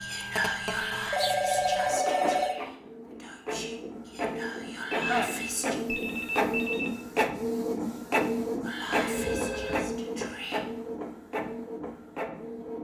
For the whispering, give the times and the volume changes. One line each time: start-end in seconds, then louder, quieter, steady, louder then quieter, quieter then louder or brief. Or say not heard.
0.0-5.8 quieter then louder
8.7-10.6 brief.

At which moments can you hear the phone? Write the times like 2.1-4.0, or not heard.
0.3-2.6, 4.9-6.9, 8.9-9.9.